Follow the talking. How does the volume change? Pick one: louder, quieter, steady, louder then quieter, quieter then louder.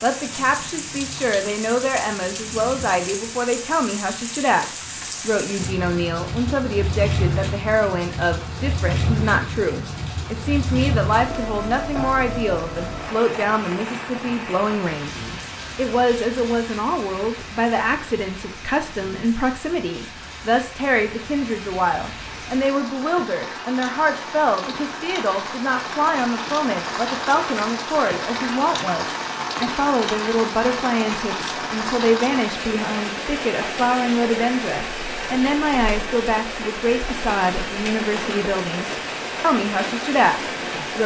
steady.